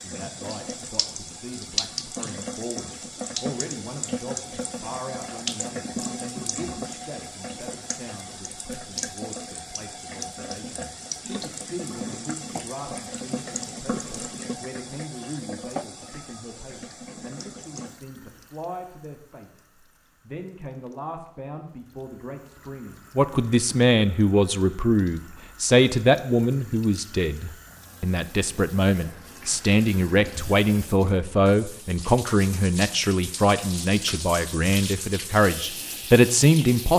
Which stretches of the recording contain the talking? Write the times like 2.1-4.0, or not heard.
0.0-19.6, 20.2-36.9.